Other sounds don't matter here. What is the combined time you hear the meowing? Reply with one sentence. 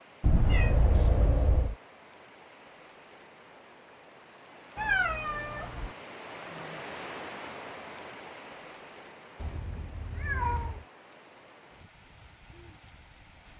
The meowing can be heard for 4 seconds in total.